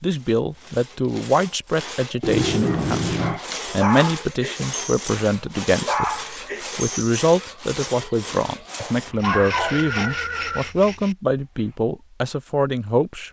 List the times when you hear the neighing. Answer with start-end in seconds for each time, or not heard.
2.2-3.4, 8.8-10.7.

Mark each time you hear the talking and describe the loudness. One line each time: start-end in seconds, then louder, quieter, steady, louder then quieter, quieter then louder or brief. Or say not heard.
0.0-13.2 steady.